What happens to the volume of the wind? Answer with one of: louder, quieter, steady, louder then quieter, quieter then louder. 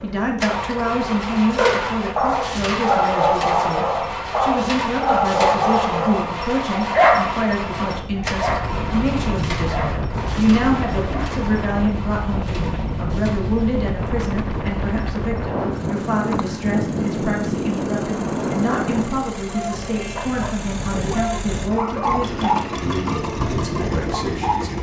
louder then quieter.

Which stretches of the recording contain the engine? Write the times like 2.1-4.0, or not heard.
0.0-24.7.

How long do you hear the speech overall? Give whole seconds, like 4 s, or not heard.
25 s.